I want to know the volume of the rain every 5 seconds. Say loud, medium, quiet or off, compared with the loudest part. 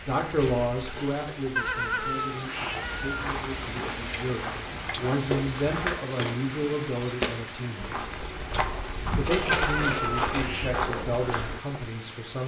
loud, loud, medium.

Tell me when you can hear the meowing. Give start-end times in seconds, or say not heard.
1.6-3.2, 9.5-10.8.